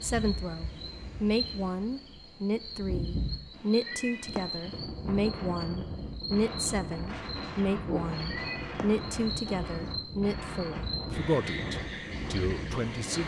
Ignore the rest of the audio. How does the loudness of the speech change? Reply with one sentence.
The loudness of the speech stays about the same.